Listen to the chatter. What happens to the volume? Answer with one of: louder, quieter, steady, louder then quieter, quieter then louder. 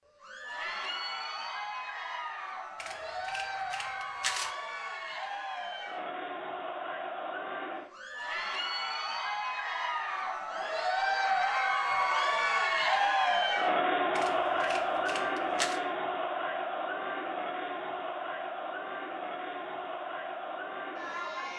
louder then quieter.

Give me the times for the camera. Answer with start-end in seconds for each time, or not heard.
2.8-4.5, 14.2-15.8.